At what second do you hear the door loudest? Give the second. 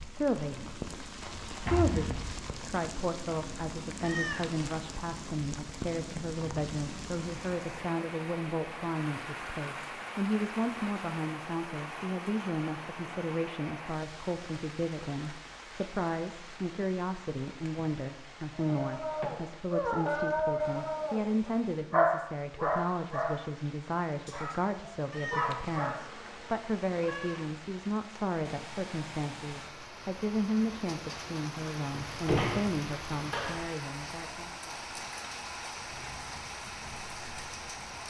32 s.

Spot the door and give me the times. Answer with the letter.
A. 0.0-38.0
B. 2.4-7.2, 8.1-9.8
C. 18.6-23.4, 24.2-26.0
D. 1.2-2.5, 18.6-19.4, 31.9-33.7
D.